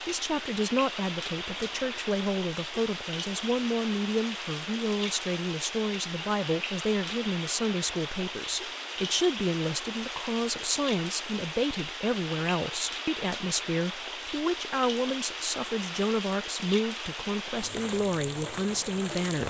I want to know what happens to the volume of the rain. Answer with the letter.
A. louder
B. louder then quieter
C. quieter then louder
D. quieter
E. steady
E.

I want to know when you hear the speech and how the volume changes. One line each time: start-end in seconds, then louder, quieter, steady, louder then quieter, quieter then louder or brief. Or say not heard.
0.0-19.4 steady.